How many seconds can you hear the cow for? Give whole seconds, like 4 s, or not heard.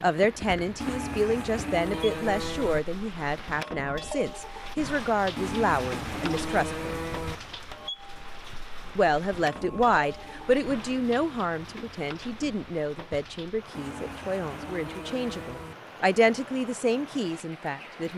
8 s.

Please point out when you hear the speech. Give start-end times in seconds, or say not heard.
0.0-6.9, 8.9-18.1.